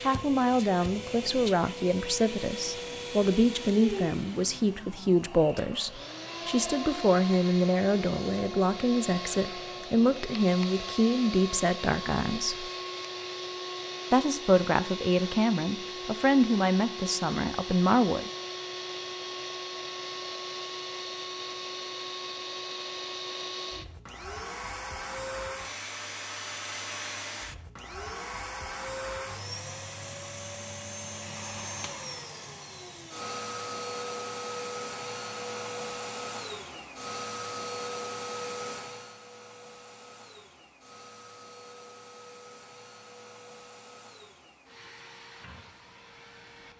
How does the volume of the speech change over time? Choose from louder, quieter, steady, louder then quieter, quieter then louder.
steady.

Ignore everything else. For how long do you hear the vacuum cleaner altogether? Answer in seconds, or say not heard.
47 s.